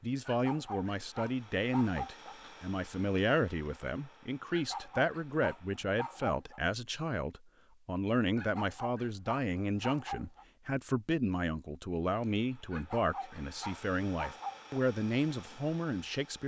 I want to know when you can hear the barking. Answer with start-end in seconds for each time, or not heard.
0.2-2.4, 4.5-6.6, 8.3-10.4, 12.7-14.8.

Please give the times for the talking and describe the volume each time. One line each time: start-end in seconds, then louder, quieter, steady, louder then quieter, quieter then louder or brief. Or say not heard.
0.0-16.4 steady.